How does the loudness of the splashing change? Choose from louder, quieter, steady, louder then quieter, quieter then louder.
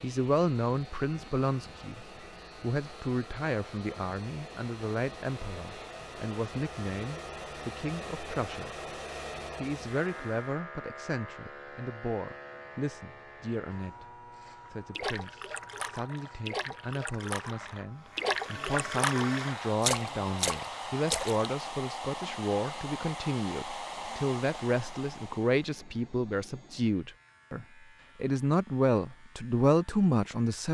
louder.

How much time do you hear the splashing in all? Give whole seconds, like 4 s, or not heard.
7 s.